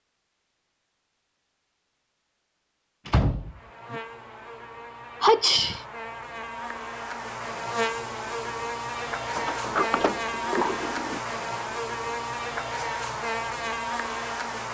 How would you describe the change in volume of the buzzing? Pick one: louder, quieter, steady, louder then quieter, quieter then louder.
louder.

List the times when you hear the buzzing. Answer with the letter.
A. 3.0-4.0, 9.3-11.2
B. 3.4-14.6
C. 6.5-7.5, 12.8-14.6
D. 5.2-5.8
B.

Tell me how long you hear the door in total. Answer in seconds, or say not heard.
3 s.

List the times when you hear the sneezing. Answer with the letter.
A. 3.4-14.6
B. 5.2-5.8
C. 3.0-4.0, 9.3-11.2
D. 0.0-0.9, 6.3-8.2
B.